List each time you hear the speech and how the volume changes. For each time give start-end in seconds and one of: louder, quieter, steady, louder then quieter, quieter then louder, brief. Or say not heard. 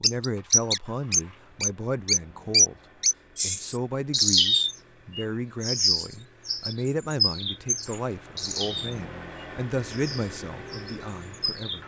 0.0-2.8 brief
3.4-11.8 steady.